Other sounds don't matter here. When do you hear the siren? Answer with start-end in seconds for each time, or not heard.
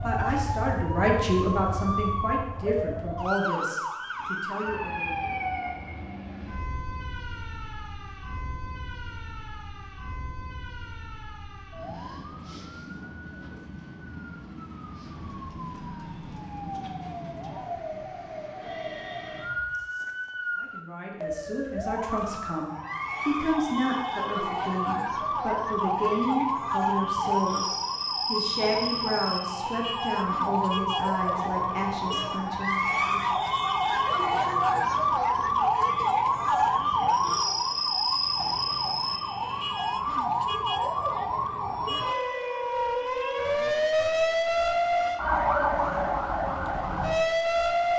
0.0-47.9.